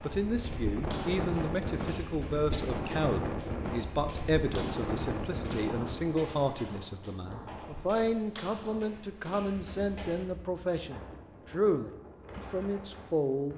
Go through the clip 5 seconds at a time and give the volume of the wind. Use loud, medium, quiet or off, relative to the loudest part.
loud, medium, quiet.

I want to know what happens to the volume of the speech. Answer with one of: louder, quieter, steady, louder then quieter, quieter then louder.
steady.